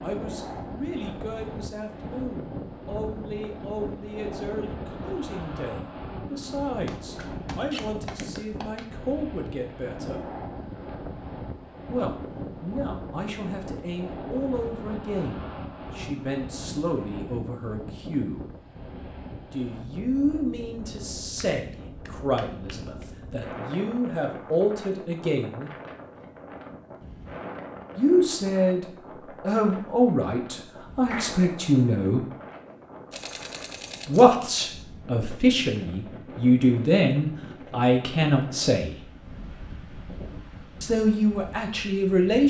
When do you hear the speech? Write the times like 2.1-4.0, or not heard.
0.0-10.2, 11.9-18.4, 19.5-25.7, 27.9-32.2, 34.0-39.0, 40.8-42.4.